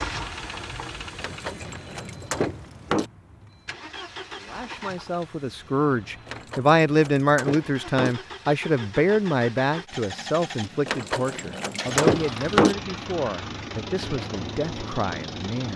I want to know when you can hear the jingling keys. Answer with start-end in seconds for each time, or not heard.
1.2-3.1, 6.2-8.2, 10.8-12.8.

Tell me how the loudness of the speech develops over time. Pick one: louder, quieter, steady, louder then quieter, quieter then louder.
quieter.